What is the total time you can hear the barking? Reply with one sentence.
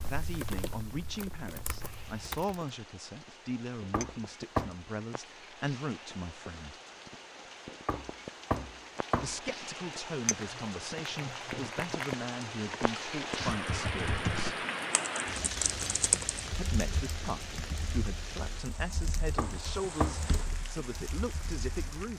The barking can't be heard in this clip.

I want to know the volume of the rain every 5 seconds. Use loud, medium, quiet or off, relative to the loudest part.
quiet, medium, loud, loud, medium.